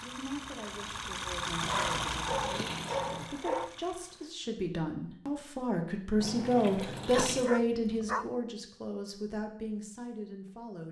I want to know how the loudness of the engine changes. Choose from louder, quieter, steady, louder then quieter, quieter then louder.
louder then quieter.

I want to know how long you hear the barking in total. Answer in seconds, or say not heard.
3 s.